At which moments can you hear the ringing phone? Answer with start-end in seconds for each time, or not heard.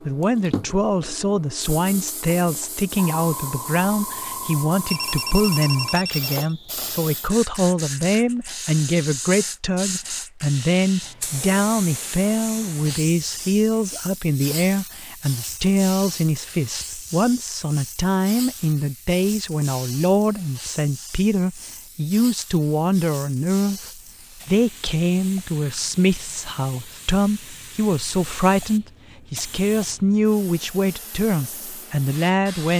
4.8-6.5.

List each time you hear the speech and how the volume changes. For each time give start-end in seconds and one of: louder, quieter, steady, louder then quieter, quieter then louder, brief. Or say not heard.
0.1-32.7 steady.